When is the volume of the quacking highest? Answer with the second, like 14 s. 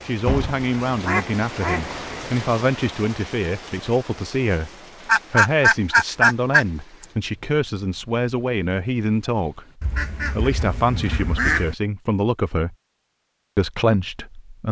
6 s.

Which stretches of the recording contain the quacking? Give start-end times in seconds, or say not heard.
0.2-2.2, 5.0-7.0, 9.8-11.8.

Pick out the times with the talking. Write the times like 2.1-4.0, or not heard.
0.1-4.7, 5.3-12.8, 13.6-14.6.